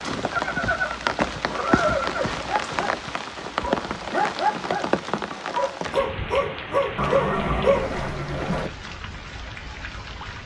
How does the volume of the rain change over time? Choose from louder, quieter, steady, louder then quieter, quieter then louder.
quieter.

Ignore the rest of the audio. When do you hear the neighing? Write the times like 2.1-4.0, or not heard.
0.3-2.4, 7.0-8.7.